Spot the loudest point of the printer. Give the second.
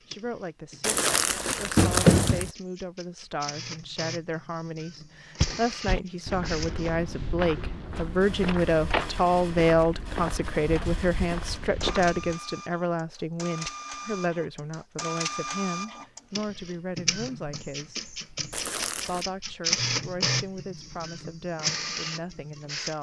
20 s.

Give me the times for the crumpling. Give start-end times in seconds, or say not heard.
0.8-2.5, 18.5-19.2.